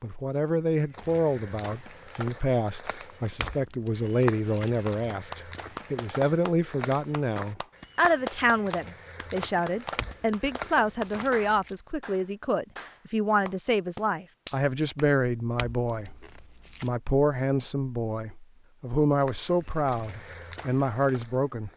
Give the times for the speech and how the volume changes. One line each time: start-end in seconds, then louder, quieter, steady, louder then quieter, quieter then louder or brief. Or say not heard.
0.0-21.7 steady.